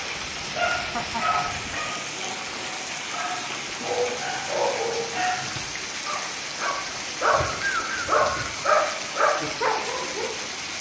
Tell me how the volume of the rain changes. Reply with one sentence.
The volume of the rain stays about the same.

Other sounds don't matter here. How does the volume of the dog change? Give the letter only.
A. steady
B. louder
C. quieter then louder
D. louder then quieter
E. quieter
B.